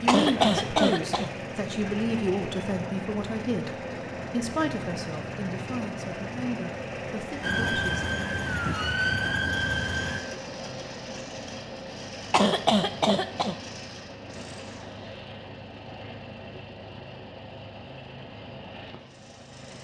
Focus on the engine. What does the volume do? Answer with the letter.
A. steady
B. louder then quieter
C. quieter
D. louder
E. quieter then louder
C.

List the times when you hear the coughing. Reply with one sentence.
You can hear the coughing from 0.1 to 1.3 s and from 12.3 to 13.6 s.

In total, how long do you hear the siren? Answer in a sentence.
The siren can be heard for 3 seconds in total.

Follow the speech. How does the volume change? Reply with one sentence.
The loudness of the speech goes down.